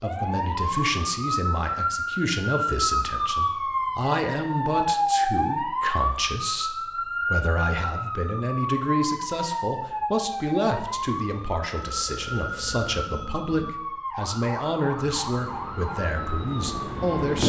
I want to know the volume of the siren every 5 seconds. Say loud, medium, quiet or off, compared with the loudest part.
loud, loud, medium, medium.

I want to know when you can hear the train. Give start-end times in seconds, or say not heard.
14.9-17.4.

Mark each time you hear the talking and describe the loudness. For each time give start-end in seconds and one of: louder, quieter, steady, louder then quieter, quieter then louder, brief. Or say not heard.
0.0-17.4 steady.